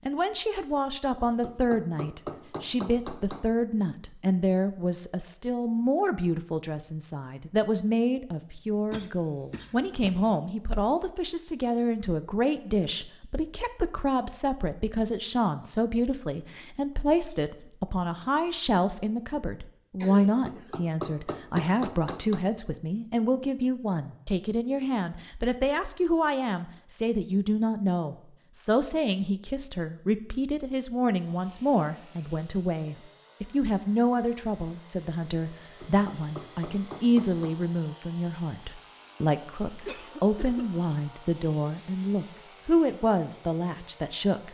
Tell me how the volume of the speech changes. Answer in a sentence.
The loudness of the speech stays about the same.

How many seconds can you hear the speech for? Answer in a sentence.
The speech can be heard for 44 seconds in total.